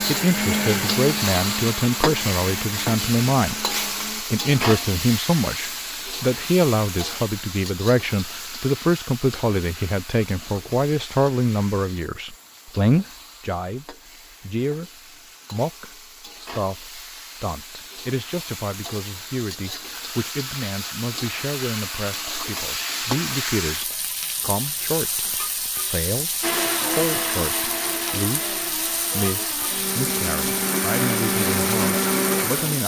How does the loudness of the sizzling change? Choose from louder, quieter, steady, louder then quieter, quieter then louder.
quieter then louder.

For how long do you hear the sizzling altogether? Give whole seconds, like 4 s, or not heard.
33 s.